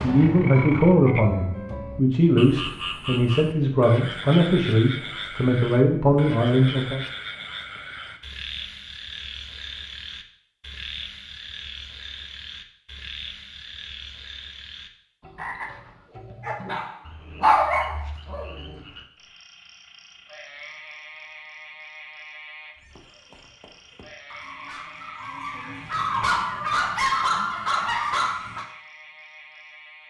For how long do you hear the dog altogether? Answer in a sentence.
You can hear the dog for 8 seconds altogether.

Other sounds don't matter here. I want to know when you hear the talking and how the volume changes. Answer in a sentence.
You can hear the talking from 0.0 to 7.0 s, at a steady volume.